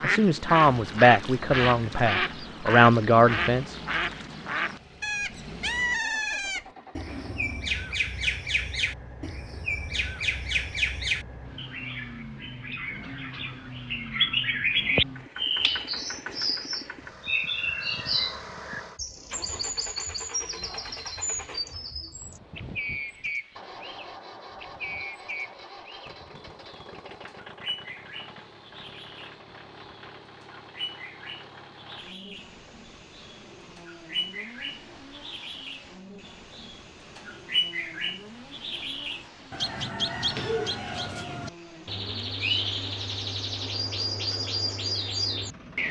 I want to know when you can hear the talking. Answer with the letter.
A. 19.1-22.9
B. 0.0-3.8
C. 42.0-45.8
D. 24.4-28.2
B.